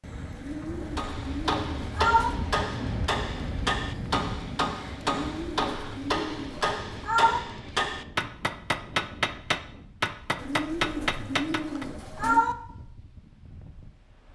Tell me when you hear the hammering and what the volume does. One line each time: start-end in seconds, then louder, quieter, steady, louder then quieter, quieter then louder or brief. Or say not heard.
0.9-11.8 steady.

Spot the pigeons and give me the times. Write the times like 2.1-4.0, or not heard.
0.3-2.4, 5.2-6.6, 10.3-12.4.